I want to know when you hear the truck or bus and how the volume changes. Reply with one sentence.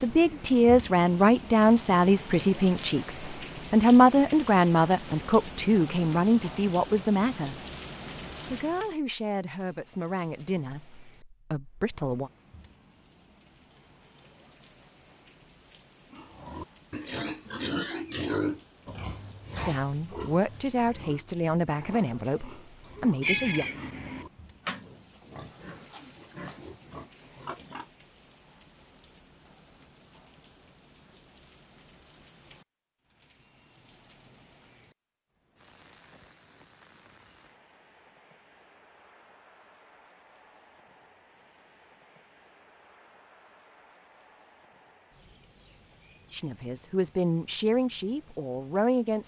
The truck or bus can't be heard in this clip.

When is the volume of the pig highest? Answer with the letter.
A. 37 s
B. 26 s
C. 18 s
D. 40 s
C.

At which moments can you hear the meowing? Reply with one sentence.
You can hear the meowing from 23.2 to 24.2 s.